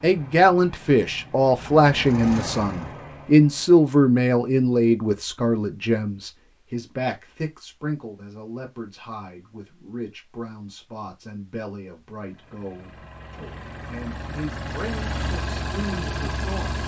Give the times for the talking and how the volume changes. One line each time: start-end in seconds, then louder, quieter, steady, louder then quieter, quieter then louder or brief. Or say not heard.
0.0-16.8 quieter.